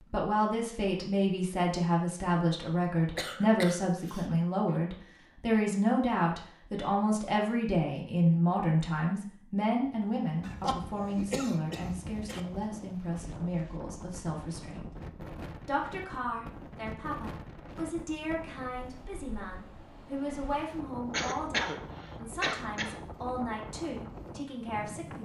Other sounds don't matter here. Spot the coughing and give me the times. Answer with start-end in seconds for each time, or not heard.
3.1-4.3, 10.4-12.4, 21.1-22.9.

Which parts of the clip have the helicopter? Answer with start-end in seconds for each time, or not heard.
not heard.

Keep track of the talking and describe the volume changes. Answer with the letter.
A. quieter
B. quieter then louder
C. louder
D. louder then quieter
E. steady
A.